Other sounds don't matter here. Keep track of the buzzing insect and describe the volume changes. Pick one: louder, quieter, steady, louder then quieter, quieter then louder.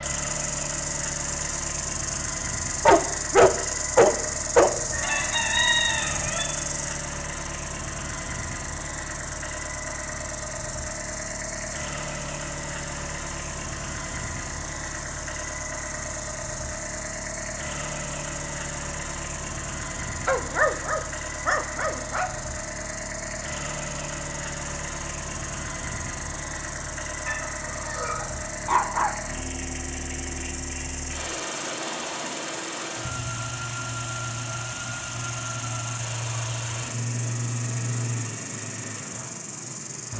quieter.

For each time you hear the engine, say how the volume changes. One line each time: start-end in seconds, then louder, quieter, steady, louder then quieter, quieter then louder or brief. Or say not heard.
0.0-40.1 steady.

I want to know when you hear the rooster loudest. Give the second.
6 s.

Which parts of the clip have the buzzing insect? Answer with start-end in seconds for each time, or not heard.
0.0-40.1.